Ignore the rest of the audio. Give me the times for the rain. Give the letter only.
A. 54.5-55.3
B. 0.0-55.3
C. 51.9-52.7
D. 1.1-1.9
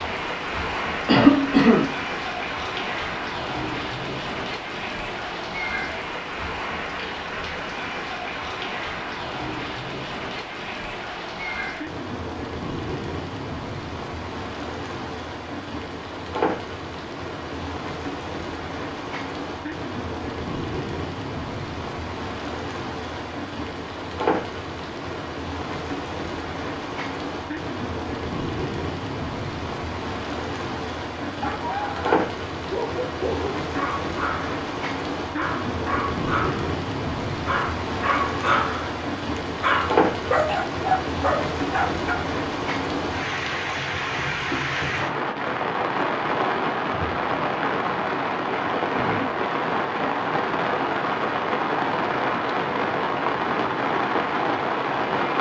B.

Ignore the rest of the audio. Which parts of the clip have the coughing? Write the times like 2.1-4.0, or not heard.
1.1-1.9.